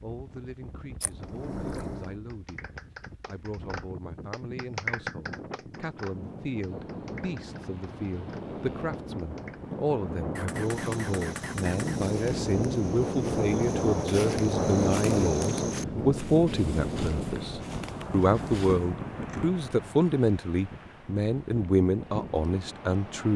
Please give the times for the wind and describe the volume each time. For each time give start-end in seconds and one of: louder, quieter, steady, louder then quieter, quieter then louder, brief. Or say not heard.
0.0-23.3 louder then quieter.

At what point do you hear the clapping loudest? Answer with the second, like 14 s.
5 s.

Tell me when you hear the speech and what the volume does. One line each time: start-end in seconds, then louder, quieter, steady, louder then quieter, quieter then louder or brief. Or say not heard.
0.0-23.3 louder.